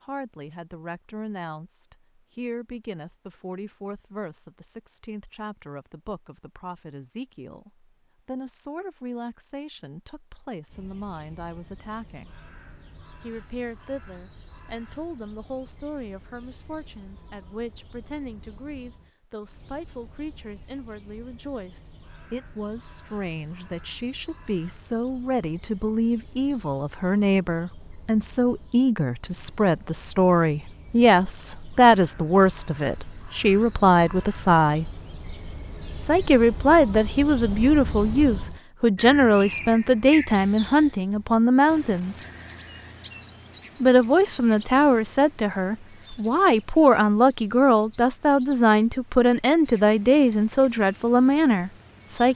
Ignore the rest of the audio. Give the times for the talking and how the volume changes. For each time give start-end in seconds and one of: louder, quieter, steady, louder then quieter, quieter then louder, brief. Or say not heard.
0.0-12.3 steady
13.2-34.9 louder
36.0-42.1 steady
43.8-52.3 steady.